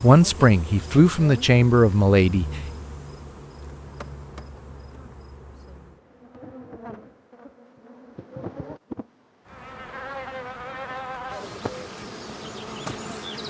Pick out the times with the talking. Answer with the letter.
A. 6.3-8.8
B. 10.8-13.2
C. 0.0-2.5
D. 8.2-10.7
C.